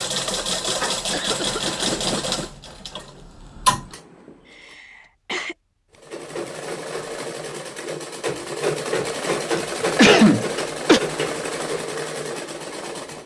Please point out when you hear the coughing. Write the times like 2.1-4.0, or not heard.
0.2-2.5, 4.5-5.5, 9.6-11.0.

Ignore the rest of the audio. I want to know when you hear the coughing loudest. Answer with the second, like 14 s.
10 s.